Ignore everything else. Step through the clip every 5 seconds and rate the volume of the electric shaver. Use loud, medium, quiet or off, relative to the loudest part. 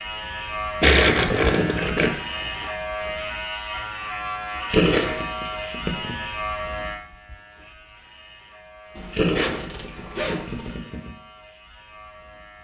loud, loud, quiet.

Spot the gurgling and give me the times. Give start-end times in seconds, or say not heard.
0.8-2.1, 4.7-6.2, 9.1-11.1.